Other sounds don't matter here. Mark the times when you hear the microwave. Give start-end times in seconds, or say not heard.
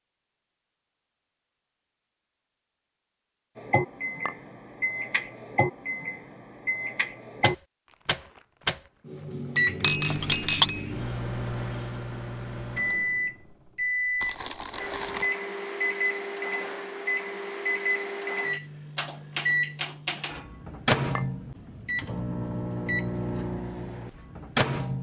3.5-24.9.